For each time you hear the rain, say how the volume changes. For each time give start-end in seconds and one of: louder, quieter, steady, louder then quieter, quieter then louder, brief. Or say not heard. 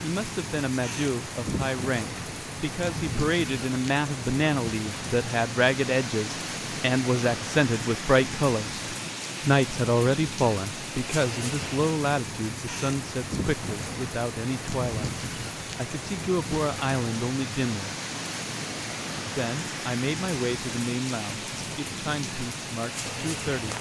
0.0-23.7 steady.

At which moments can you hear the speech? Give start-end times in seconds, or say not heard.
0.0-8.8, 9.4-17.9, 19.4-23.7.